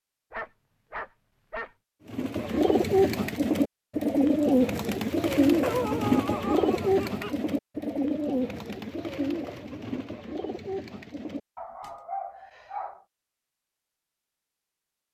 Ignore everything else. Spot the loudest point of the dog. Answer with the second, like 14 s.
6 s.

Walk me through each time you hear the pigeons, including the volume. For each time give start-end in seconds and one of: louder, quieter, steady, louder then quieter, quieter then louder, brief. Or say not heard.
2.0-12.0 quieter.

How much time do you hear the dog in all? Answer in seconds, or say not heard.
5 s.